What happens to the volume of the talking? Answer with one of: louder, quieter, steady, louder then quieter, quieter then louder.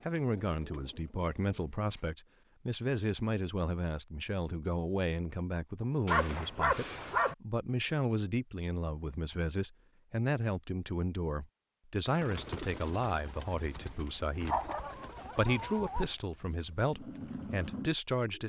steady.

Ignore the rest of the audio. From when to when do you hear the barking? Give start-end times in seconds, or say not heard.
6.0-7.3, 14.4-16.1.